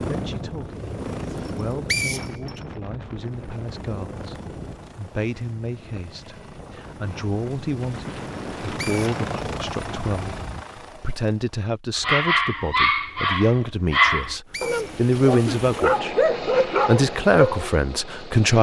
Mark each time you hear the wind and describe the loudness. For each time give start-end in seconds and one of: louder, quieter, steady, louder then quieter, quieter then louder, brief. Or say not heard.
0.0-10.7 quieter then louder.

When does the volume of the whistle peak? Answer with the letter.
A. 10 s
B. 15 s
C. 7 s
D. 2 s
D.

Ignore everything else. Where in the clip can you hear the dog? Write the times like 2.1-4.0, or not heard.
11.9-17.8.